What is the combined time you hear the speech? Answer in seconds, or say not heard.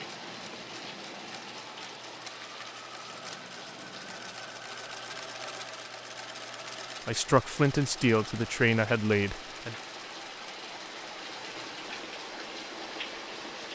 3 s.